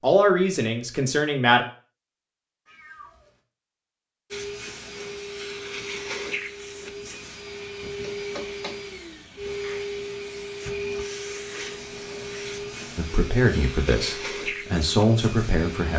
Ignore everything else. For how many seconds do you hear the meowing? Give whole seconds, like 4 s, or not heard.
2 s.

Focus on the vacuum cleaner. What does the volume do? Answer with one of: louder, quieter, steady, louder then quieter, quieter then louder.
steady.